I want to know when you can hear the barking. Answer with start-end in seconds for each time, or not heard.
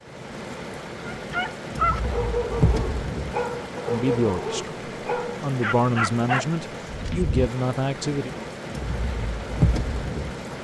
1.1-7.2.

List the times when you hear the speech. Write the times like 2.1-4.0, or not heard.
3.9-8.3.